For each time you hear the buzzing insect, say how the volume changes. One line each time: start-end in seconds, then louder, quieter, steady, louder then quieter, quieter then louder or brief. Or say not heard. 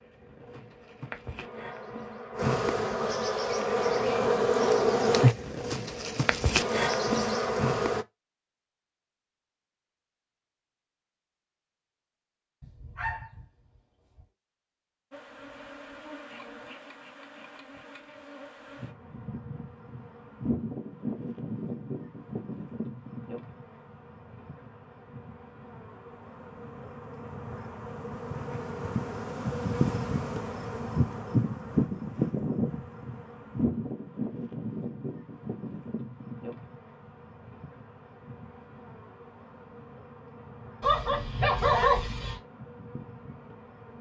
0.0-8.1 louder
15.1-43.9 louder then quieter.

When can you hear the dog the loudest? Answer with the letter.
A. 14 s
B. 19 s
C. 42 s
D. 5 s
C.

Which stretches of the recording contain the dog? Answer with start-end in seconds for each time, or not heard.
12.6-13.4, 40.8-42.4.